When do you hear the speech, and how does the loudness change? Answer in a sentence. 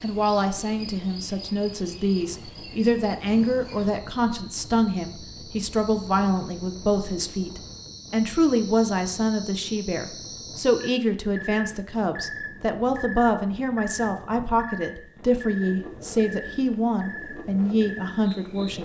You can hear the speech from 0.0 to 18.8 s, at a steady volume.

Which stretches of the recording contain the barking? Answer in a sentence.
You can't hear the barking here.